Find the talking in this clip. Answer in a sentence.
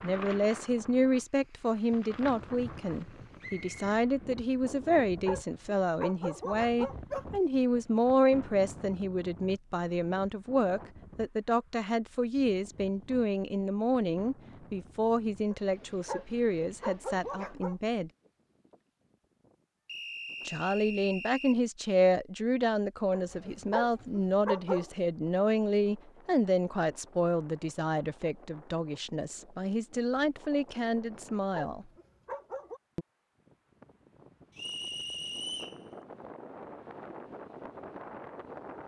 The talking can be heard from 0.0 to 18.1 s and from 20.4 to 31.9 s.